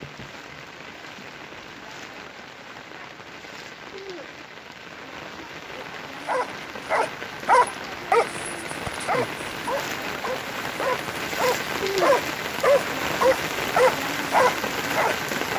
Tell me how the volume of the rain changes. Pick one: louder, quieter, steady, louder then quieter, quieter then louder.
louder.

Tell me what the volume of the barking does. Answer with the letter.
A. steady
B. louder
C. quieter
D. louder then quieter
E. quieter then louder
E.